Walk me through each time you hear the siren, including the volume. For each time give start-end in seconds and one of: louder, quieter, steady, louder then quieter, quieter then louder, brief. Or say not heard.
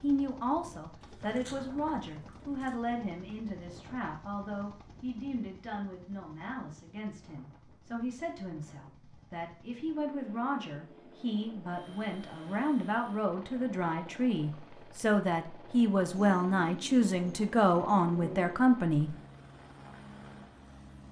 not heard.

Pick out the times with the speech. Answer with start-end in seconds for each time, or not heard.
0.0-19.1.